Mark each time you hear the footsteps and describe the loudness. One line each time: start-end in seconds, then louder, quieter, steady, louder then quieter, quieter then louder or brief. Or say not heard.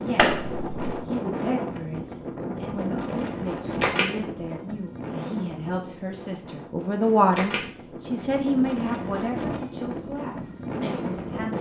not heard.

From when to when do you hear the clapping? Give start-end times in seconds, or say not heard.
0.1-0.9.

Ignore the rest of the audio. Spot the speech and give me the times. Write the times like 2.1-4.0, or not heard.
0.0-11.5.